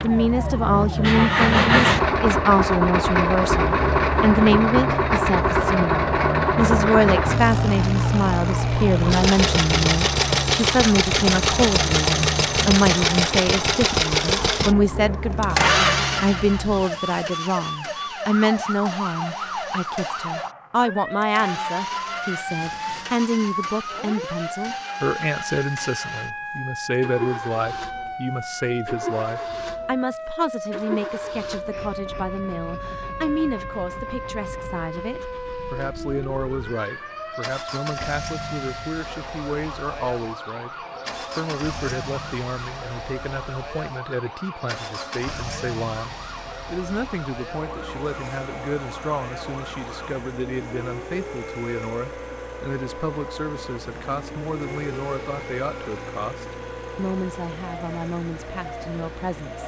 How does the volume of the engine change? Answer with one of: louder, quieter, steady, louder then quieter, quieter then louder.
quieter.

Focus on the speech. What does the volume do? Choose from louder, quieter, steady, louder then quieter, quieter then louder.
quieter.